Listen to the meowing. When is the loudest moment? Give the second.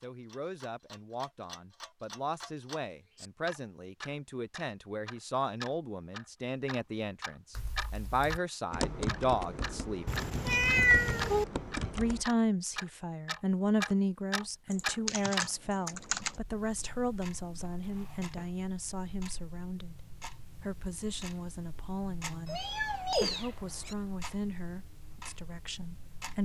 11 s.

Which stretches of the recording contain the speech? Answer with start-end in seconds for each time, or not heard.
0.0-10.1, 11.9-26.4.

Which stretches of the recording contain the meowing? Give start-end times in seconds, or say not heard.
10.1-11.4, 22.4-23.9.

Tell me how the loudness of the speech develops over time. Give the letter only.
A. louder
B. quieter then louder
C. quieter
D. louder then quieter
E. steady
D.